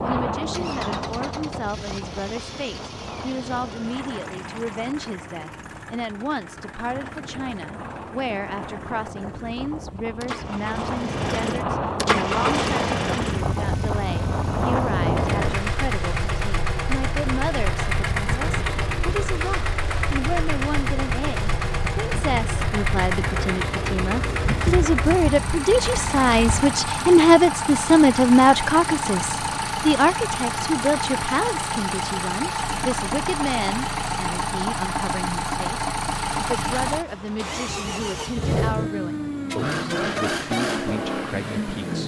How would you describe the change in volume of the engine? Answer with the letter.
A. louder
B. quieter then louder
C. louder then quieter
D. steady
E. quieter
A.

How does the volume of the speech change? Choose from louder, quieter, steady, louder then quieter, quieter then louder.
louder then quieter.